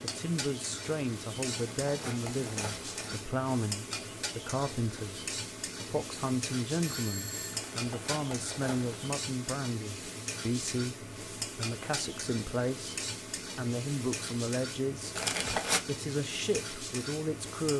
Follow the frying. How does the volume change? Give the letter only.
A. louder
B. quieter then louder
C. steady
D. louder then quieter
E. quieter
C.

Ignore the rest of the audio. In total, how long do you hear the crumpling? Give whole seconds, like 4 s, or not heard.
4 s.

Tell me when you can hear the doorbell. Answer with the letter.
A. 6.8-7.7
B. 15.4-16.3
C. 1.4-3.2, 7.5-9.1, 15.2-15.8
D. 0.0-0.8
A.